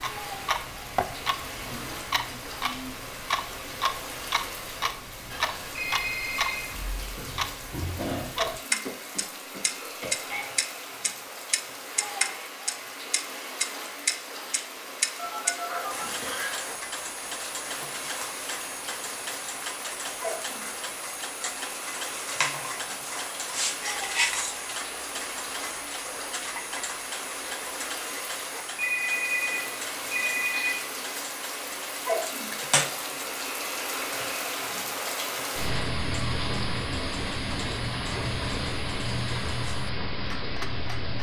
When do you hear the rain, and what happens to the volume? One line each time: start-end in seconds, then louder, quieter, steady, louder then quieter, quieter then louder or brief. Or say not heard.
0.0-41.1 louder.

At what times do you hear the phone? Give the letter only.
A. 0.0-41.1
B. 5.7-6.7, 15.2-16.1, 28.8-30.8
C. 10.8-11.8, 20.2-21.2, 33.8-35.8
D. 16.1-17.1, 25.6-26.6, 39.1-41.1
B.